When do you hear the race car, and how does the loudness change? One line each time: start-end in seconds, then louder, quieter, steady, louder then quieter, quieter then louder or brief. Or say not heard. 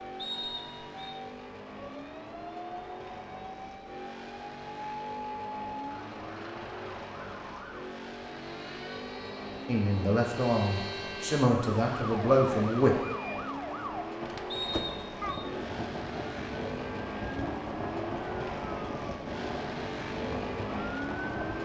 0.0-21.5 louder.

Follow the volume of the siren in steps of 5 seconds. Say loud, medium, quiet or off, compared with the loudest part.
medium, medium, loud, loud, loud.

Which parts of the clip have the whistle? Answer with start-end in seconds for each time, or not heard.
0.1-1.1, 14.5-15.4.